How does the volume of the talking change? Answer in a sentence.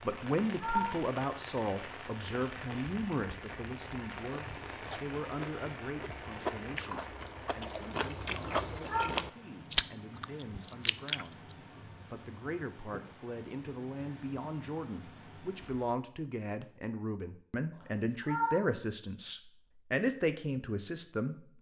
The volume of the talking goes down, then up.